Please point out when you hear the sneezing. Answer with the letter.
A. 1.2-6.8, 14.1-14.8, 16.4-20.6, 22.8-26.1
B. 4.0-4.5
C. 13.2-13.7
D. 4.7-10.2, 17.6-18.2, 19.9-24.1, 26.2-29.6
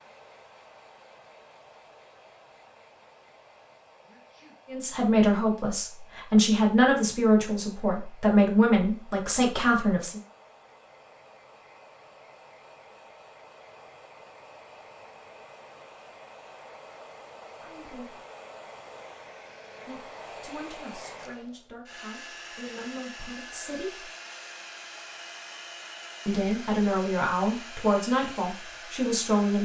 B.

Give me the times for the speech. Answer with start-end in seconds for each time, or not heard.
4.7-10.2, 17.6-18.2, 19.9-24.1, 26.2-29.6.